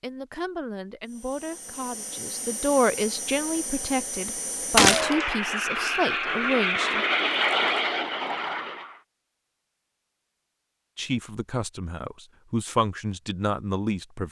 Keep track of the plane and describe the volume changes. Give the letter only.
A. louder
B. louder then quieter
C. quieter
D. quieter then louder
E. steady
A.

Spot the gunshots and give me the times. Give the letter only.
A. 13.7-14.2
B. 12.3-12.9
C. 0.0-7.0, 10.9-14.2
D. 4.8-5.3
D.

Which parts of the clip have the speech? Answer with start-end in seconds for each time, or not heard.
0.0-7.0, 10.9-14.2.